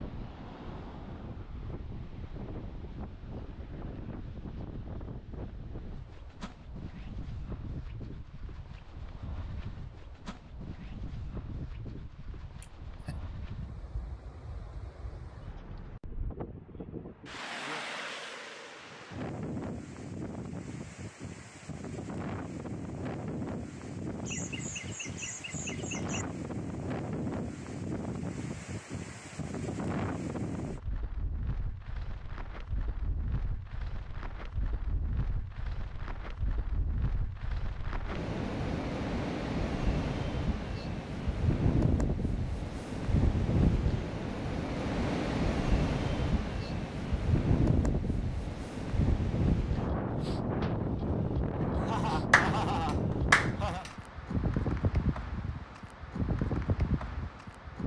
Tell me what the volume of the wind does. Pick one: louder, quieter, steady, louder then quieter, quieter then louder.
louder.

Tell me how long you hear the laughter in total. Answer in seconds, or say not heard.
5 s.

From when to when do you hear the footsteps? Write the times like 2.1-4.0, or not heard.
not heard.